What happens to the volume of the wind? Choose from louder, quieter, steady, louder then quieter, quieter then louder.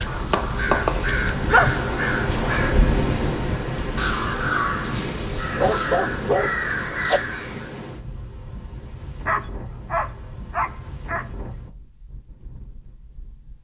quieter.